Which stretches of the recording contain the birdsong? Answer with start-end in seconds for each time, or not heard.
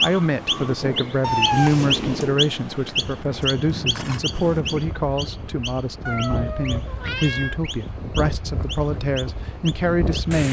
0.0-10.4.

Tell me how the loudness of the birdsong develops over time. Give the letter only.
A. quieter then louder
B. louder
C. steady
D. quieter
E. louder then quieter
D.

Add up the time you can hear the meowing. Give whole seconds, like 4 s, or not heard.
3 s.